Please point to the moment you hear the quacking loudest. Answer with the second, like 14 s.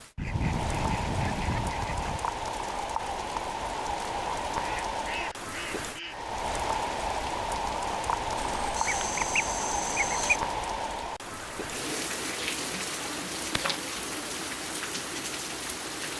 10 s.